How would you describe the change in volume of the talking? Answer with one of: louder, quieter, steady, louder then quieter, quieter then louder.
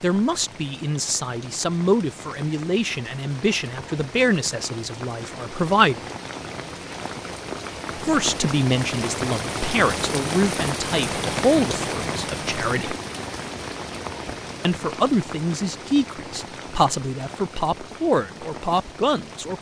steady.